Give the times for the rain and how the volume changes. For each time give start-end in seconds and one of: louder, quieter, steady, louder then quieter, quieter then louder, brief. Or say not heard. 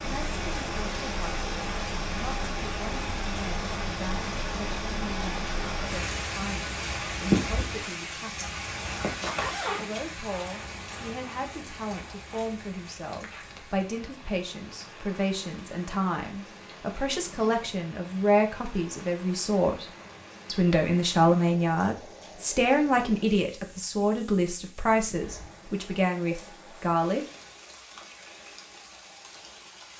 0.0-29.9 quieter.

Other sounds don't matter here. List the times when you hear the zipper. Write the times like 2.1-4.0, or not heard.
9.0-9.9.